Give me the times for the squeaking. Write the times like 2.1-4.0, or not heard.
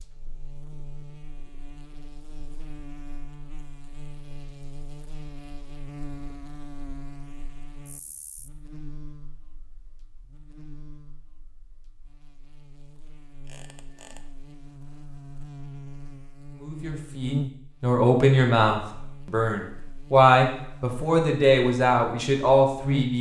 13.4-14.3.